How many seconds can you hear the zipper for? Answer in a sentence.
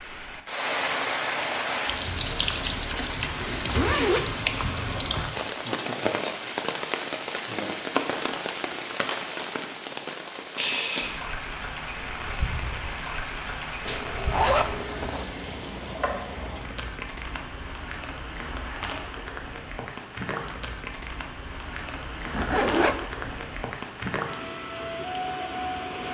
You can hear the zipper for 3 seconds altogether.